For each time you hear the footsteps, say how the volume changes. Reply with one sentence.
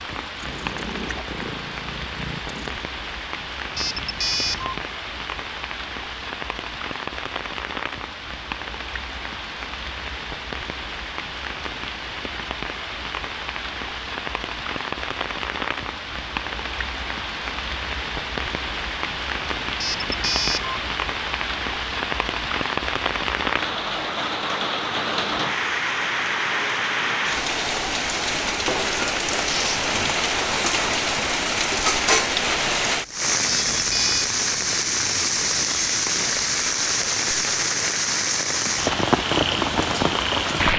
The footsteps can't be heard in this clip.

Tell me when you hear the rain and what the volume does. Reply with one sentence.
You can hear the rain from 0.0 to 40.7 s, getting louder.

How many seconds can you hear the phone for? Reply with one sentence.
The phone can be heard for 3 seconds in total.